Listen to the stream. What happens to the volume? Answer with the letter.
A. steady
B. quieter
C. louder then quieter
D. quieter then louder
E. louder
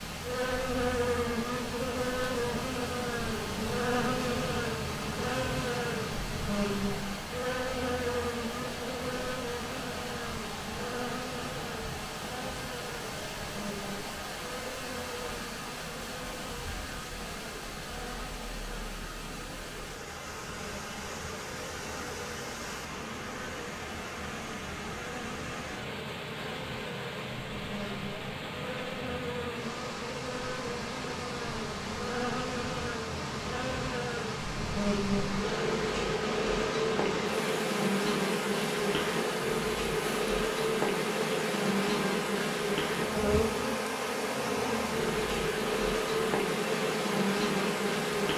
A.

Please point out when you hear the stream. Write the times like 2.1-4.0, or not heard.
0.0-48.3.